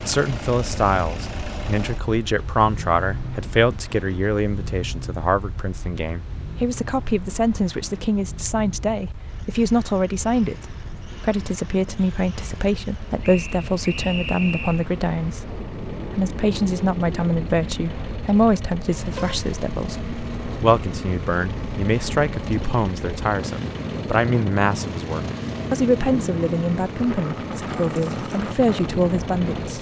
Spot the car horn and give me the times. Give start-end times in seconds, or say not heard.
18.7-19.4.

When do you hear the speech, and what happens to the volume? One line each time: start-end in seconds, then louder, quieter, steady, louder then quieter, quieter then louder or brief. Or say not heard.
0.0-29.7 steady.